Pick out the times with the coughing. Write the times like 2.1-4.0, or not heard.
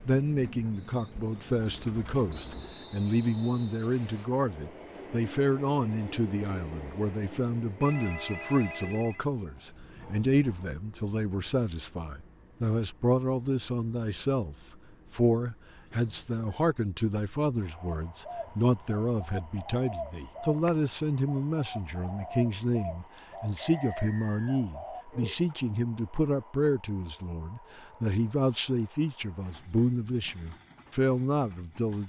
not heard.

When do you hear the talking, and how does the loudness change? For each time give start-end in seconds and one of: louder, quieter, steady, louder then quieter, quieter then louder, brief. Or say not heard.
0.1-32.0 steady.